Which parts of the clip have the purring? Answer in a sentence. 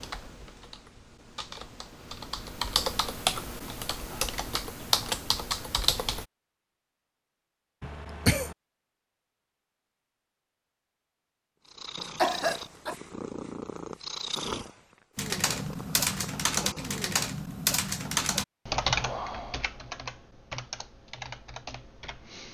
The purring can be heard from 11.7 to 17.1 s.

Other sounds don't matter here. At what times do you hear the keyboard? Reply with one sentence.
You can hear the keyboard from 0.0 to 6.2 s and from 15.2 to 22.5 s.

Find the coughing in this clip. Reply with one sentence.
The coughing can be heard from 7.8 to 8.6 s and from 12.2 to 12.9 s.